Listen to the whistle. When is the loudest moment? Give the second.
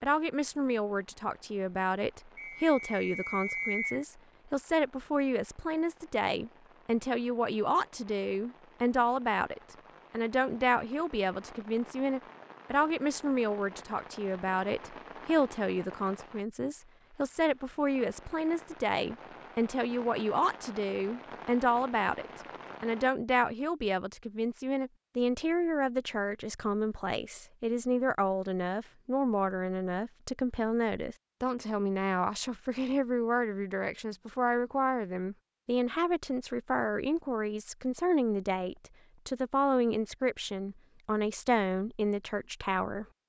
4 s.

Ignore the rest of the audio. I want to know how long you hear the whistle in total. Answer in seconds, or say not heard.
2 s.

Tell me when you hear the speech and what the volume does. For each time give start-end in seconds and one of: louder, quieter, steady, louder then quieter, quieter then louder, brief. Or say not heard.
0.0-43.0 steady.